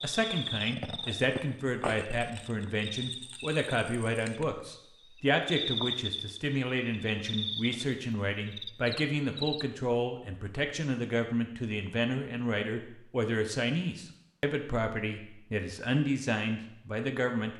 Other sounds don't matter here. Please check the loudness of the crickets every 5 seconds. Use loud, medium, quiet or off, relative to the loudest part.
loud, loud, off, off.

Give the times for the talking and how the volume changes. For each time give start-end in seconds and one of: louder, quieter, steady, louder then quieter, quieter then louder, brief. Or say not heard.
0.0-17.5 steady.